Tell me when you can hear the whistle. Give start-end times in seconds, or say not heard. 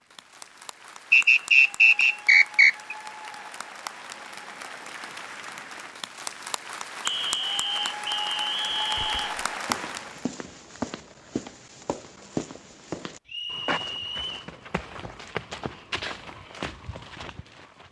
1.1-2.7, 7.0-9.3, 13.2-14.5.